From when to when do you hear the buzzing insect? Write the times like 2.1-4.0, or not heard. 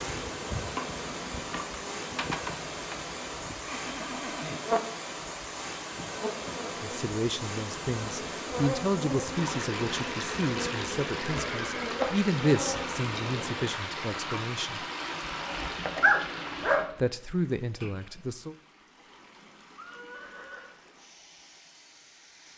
0.0-13.8.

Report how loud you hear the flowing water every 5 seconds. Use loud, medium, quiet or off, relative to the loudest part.
loud, loud, loud, medium, quiet.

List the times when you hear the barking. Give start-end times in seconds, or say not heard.
15.4-16.9.